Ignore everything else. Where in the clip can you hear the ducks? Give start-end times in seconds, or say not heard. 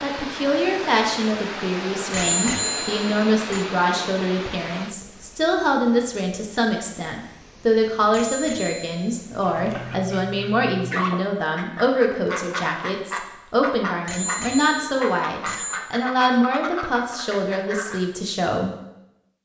9.3-18.1.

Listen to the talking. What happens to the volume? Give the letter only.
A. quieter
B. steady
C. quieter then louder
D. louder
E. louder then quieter
B.